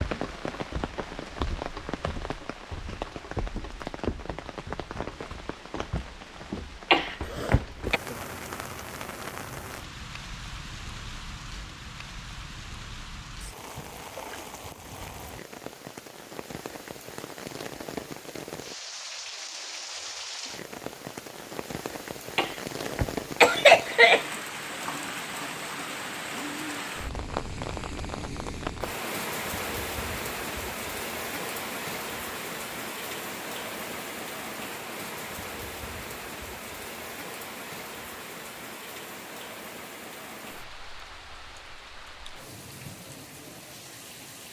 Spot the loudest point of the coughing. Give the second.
24 s.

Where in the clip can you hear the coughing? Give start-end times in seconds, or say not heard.
6.9-8.0, 22.4-24.2.